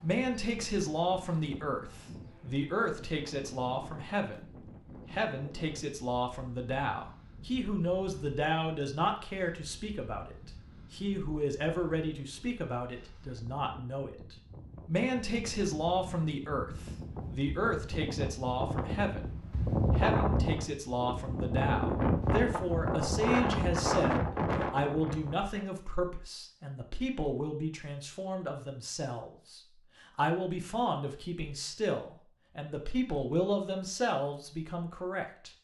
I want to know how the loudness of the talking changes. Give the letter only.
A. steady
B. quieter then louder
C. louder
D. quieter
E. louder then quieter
A.